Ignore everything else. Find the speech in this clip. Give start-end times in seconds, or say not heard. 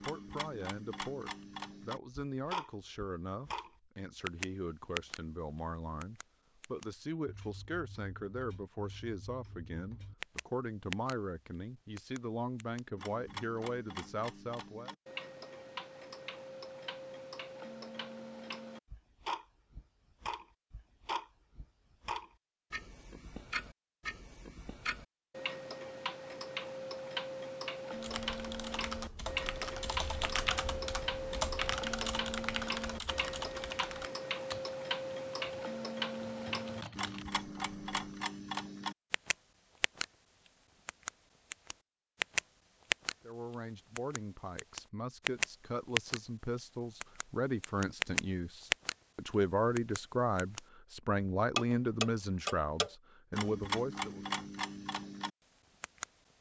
0.1-14.9, 43.2-54.2.